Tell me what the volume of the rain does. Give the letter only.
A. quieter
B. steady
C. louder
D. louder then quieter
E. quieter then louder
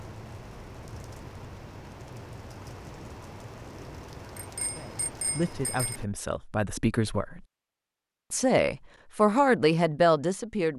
B.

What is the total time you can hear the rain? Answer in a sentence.
You can hear the rain for 6 seconds altogether.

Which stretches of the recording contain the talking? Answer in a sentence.
The talking can be heard from 4.8 to 7.5 s and from 8.3 to 10.7 s.